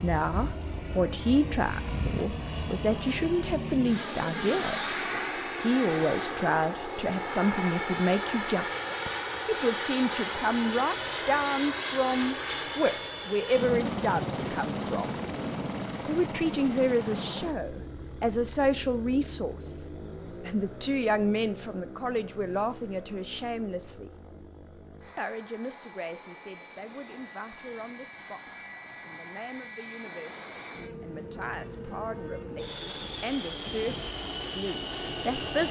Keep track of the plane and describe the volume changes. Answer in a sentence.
The loudness of the plane goes down, then up.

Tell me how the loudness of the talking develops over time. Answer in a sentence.
The volume of the talking goes down.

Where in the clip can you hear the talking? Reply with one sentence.
You can hear the talking from 0.0 to 4.8 s, from 5.6 to 8.7 s, from 9.4 to 15.1 s, from 16.1 to 24.1 s, from 25.1 to 28.4 s and from 29.0 to 35.6 s.